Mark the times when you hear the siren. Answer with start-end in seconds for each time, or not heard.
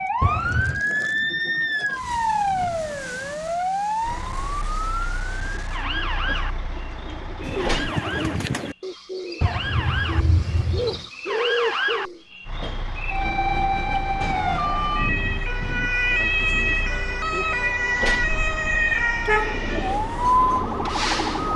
0.0-21.5.